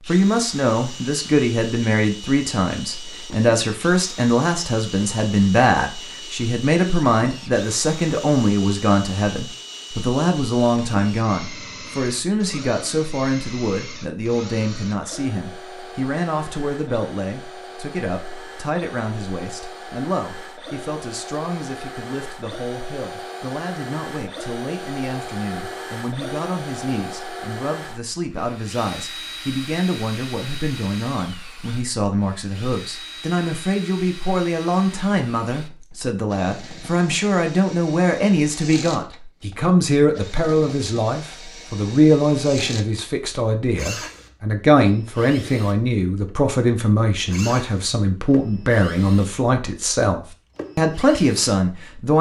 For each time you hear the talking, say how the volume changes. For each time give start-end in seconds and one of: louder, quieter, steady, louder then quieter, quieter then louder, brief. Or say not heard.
0.1-52.1 quieter then louder.